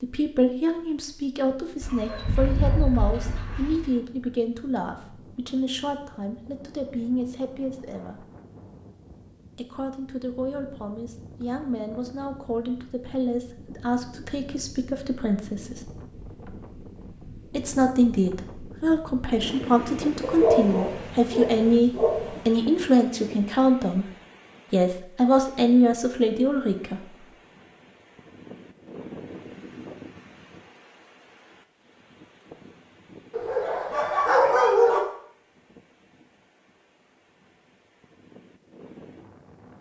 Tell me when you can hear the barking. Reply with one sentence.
You can hear the barking from 1.8 to 3.9 s, from 20.2 to 22.6 s and from 33.3 to 35.0 s.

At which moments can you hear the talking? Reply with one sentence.
The talking can be heard from 0.0 to 8.2 s, from 9.6 to 15.8 s, from 17.5 to 24.1 s and from 24.7 to 27.0 s.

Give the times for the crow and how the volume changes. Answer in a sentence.
You can't hear the crow here.